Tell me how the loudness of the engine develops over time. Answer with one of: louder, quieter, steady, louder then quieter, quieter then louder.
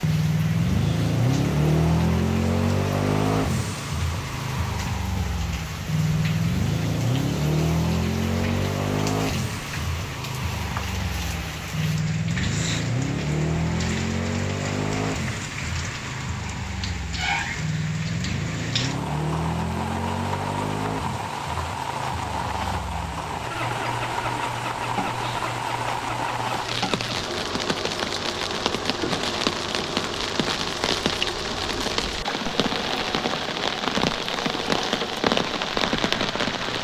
quieter.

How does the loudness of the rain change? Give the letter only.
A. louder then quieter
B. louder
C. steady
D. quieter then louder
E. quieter
B.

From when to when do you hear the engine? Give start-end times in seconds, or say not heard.
0.0-36.7.